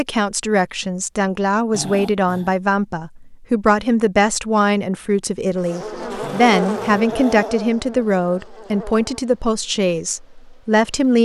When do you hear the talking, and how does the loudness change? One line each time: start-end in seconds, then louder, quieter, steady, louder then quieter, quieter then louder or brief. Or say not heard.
0.0-11.2 steady.